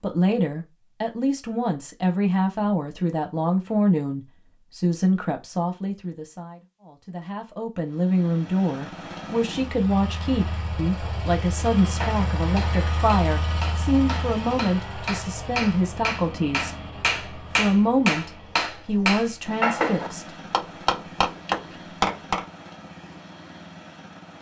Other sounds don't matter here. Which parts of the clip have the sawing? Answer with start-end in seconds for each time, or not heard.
not heard.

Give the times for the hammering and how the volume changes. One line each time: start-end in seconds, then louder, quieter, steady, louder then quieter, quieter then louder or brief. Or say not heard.
10.8-22.4 louder.